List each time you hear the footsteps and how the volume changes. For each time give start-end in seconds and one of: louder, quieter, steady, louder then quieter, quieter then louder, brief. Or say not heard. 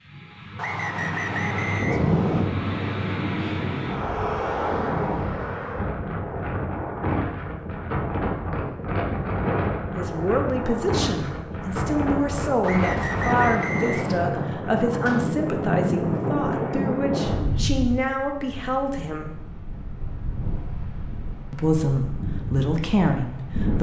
not heard.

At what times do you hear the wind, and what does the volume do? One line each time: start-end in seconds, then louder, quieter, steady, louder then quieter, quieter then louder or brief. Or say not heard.
0.0-23.7 quieter.